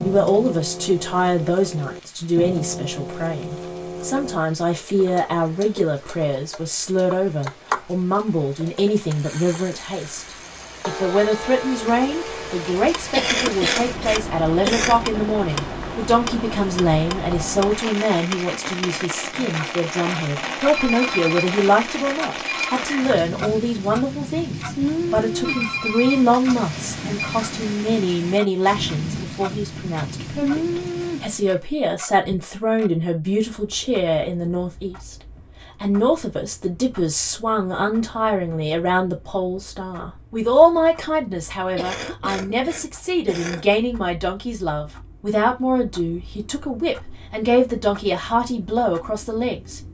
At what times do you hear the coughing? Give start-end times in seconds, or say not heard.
13.1-15.0, 41.8-43.6.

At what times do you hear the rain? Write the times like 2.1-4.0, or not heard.
0.0-31.6.